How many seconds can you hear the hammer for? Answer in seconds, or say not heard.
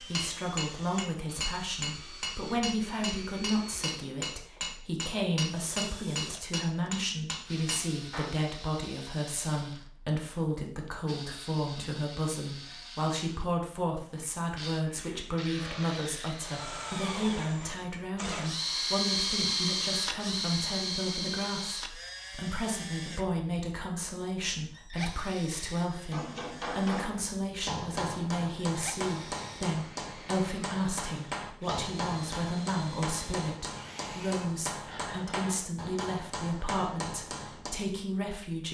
20 s.